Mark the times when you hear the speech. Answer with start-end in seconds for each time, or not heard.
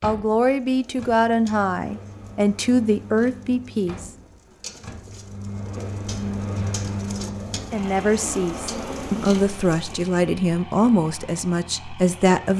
0.0-4.1, 7.5-12.5.